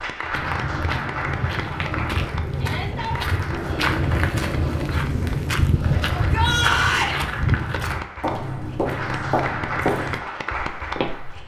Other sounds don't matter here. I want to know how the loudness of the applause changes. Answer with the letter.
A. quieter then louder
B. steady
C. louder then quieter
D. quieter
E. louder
A.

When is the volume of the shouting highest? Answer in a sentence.
The loudest moment of the shouting is at 7 seconds.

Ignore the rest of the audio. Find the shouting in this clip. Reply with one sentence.
The shouting can be heard from 2.5 to 3.2 s and from 6.1 to 7.2 s.